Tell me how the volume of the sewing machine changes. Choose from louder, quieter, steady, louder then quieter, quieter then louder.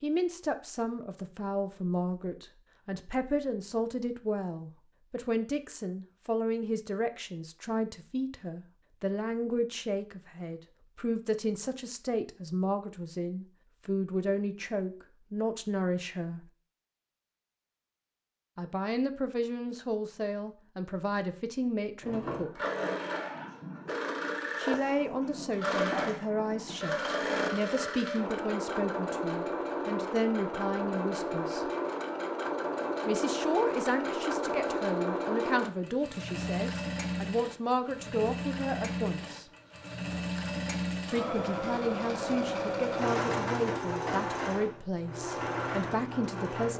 steady.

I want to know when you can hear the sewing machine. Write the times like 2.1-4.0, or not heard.
22.0-46.7.